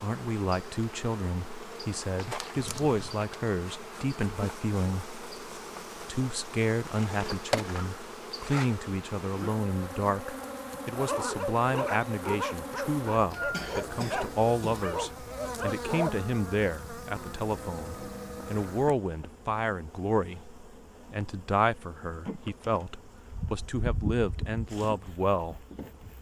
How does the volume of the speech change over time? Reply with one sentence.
The volume of the speech stays about the same.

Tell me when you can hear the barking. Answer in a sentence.
The barking can be heard from 10.9 to 16.2 s.